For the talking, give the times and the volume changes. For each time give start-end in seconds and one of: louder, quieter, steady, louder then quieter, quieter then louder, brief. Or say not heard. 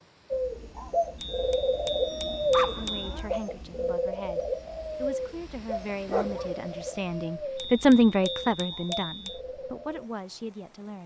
2.6-11.0 louder then quieter.